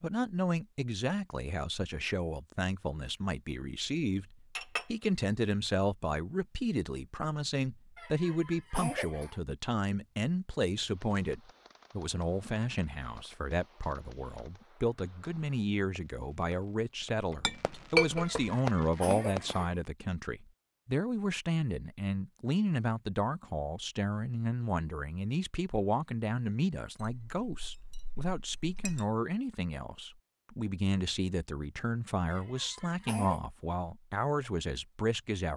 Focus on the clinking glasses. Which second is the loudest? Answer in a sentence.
The volume of the clinking glasses peaks at 18 seconds.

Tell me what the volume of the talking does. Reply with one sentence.
The volume of the talking stays about the same.